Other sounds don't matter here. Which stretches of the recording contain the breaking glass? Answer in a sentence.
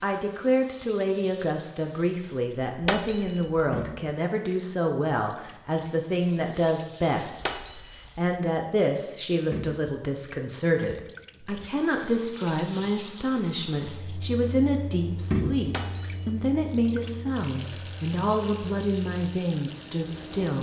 You can hear the breaking glass from 2.8 to 3.6 s, from 7.4 to 8.0 s and from 15.7 to 16.4 s.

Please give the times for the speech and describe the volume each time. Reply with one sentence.
The speech can be heard from 0.0 to 20.5 s, at a steady volume.